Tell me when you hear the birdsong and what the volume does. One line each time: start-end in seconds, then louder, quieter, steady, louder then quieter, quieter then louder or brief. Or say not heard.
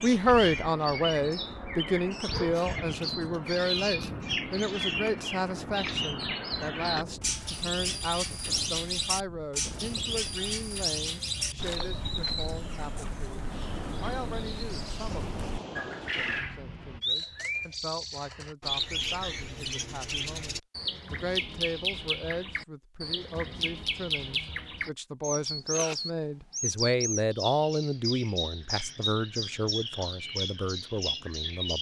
0.0-31.7 steady.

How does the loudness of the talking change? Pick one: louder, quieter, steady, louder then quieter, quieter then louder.
quieter then louder.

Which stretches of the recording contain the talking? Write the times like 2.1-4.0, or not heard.
0.0-31.7.